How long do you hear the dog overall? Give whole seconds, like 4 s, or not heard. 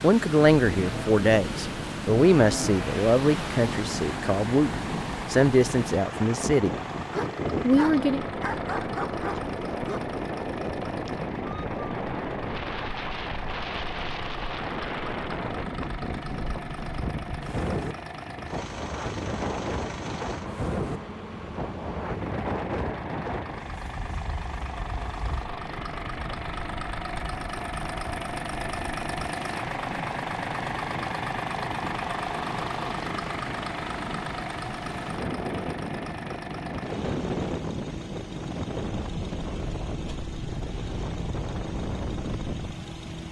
3 s.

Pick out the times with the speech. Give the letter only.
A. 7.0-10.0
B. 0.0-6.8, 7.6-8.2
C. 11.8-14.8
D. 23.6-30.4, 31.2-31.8
B.